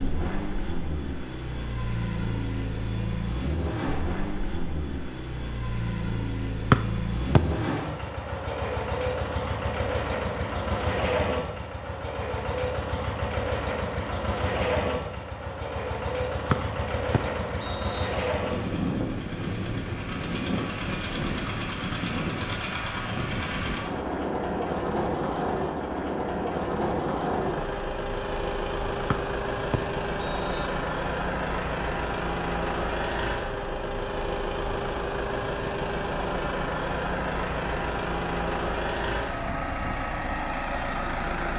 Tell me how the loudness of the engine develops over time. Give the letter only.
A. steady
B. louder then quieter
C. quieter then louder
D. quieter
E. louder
A.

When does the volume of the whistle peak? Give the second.
7 s.